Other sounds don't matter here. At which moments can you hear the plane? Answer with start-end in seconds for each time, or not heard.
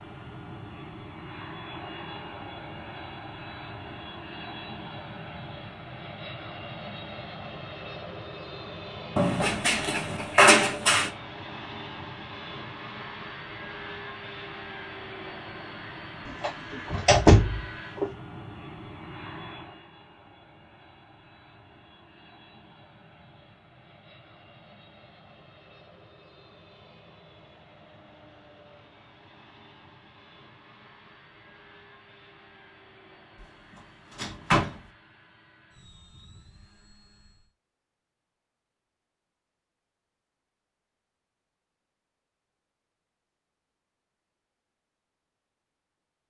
0.0-37.5.